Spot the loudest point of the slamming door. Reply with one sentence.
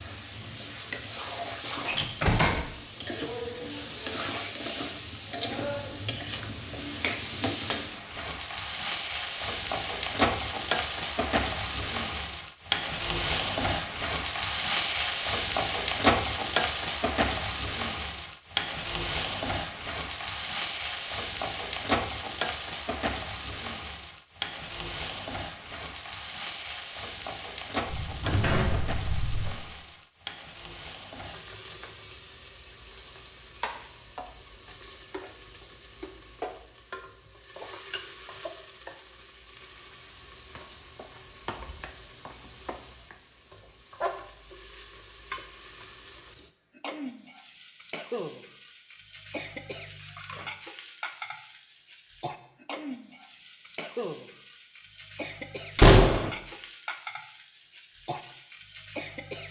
The loudest moment of the slamming door is at 56 seconds.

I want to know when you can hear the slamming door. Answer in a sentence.
You can hear the slamming door from 1.9 to 2.6 s, from 27.9 to 29.5 s and from 55.8 to 56.3 s.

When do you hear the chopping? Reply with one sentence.
You can't hear the chopping here.